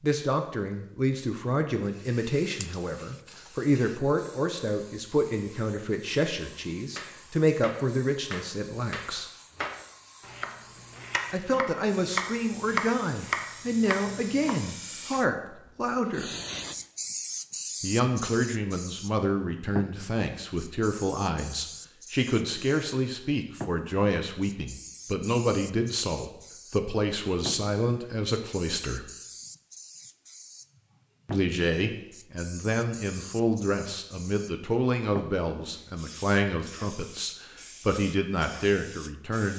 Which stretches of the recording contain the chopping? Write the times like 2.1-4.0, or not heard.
6.9-14.7.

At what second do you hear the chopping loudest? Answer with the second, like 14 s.
13 s.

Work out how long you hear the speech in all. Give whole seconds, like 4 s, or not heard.
34 s.